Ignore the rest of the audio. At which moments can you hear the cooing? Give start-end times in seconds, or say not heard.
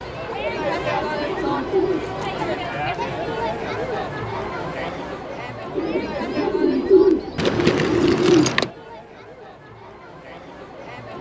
0.6-2.6, 5.8-8.6.